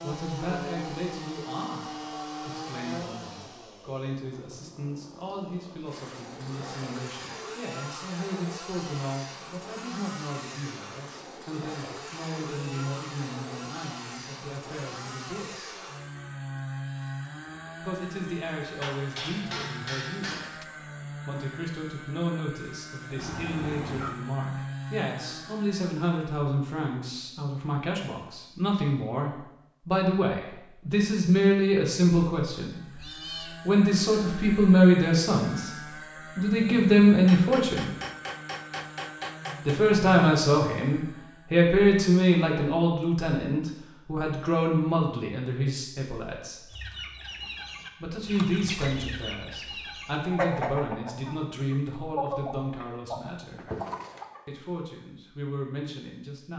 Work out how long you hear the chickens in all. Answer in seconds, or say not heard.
8 s.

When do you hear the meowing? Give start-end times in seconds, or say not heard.
23.1-24.1, 32.9-33.5.